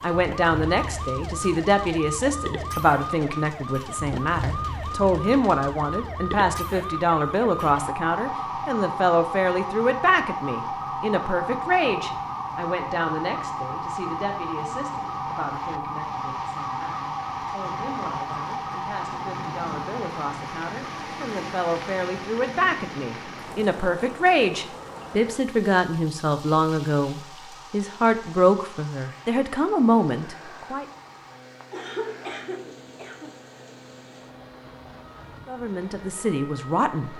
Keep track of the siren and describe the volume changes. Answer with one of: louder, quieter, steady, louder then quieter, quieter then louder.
quieter.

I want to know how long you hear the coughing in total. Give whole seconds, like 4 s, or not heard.
2 s.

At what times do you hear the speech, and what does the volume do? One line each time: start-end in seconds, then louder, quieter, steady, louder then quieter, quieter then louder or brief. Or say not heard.
0.0-30.9 quieter then louder
35.5-37.1 brief.